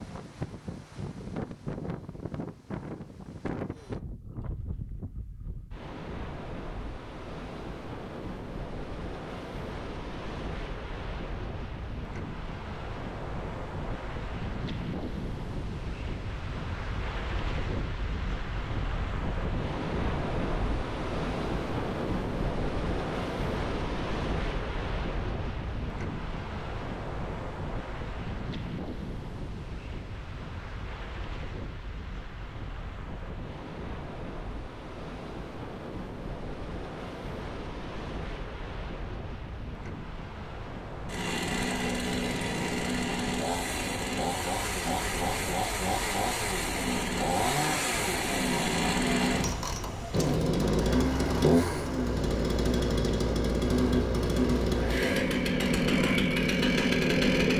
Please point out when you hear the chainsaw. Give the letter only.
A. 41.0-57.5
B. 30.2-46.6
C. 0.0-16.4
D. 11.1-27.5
A.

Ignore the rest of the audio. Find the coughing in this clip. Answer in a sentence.
The coughing can't be heard in this clip.